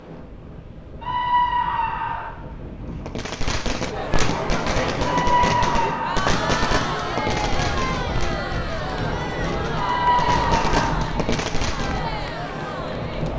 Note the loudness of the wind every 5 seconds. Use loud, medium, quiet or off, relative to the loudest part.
medium, loud, loud.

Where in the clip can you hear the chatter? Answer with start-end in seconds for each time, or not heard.
3.8-13.3.